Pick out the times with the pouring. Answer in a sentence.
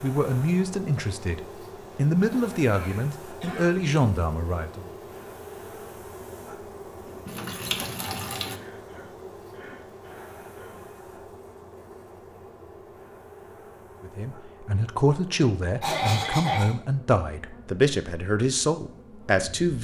The pouring can be heard from 7.0 to 8.6 s.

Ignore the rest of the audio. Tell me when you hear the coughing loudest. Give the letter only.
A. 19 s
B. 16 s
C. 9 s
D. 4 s
B.